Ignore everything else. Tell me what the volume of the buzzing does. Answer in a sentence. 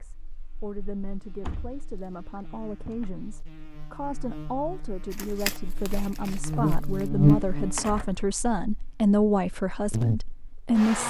The volume of the buzzing goes up, then down.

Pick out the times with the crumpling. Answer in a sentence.
The crumpling can be heard from 5.1 to 7.1 s.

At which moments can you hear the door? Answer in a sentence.
You can hear the door from 1.4 to 3.1 s and from 7.8 to 8.2 s.